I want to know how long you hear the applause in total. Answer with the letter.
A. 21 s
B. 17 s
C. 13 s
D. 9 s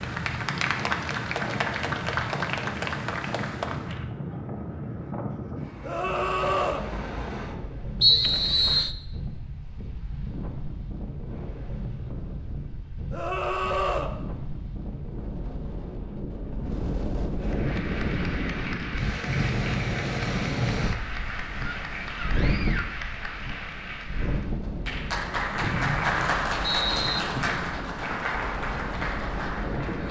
B.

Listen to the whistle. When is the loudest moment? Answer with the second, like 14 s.
8 s.